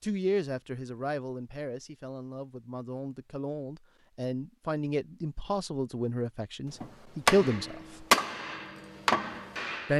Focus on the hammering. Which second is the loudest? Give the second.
8 s.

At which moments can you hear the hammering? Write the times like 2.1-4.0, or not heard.
6.8-9.9.